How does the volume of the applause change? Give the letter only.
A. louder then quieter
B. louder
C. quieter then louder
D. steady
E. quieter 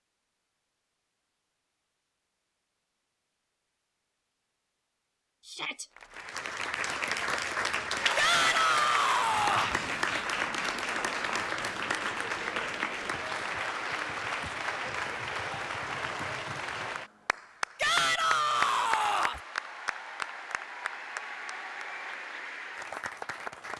E.